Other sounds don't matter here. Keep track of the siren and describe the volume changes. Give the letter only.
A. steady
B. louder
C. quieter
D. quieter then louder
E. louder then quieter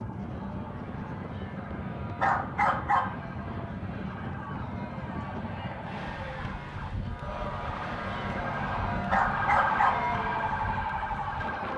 B.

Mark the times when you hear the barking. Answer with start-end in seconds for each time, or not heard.
2.2-3.1, 9.1-10.1.